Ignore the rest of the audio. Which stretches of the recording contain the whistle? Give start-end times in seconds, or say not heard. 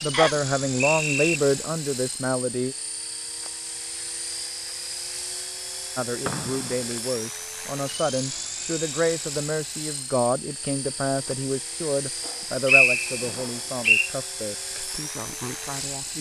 0.1-1.4, 6.2-7.0, 12.2-14.1.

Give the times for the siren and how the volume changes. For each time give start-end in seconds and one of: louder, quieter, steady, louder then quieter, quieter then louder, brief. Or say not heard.
not heard.